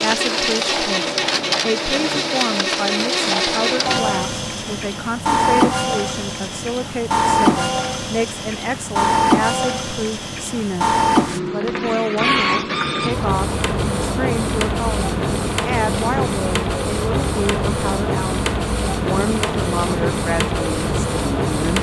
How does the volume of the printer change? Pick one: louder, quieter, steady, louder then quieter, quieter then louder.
steady.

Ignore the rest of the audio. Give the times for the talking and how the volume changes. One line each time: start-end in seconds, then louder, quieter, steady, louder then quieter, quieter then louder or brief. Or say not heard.
0.0-21.7 steady.